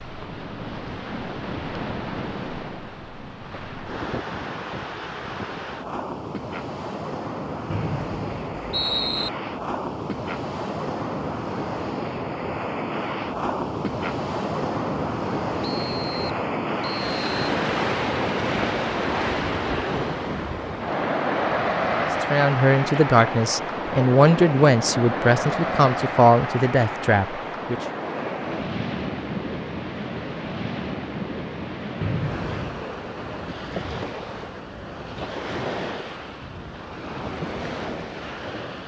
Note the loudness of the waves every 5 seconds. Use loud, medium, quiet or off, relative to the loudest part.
medium, medium, loud, loud, loud, loud, medium, medium.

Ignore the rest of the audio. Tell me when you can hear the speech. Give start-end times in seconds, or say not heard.
22.2-27.8.